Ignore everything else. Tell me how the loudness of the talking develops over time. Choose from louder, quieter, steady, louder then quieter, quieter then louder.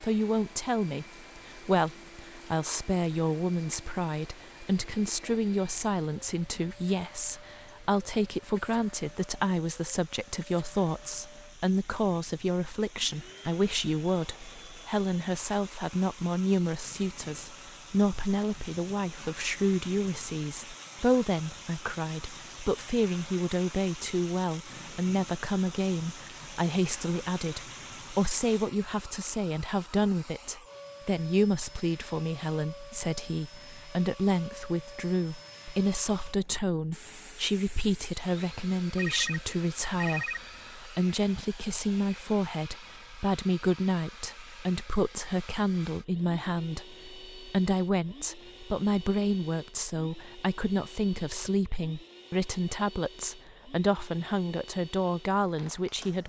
steady.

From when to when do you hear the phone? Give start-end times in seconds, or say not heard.
39.0-40.5.